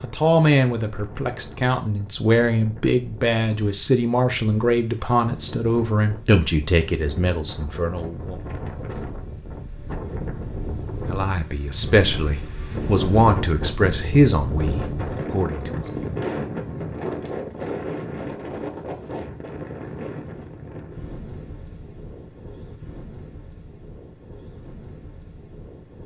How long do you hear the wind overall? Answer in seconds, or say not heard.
26 s.